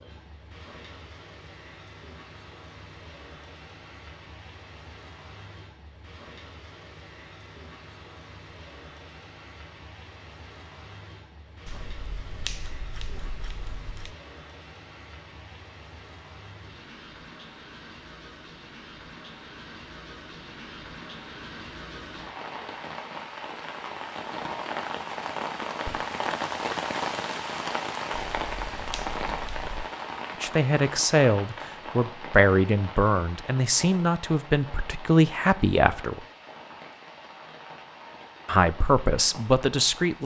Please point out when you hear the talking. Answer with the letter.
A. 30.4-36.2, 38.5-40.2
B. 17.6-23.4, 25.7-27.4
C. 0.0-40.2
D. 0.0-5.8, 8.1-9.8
A.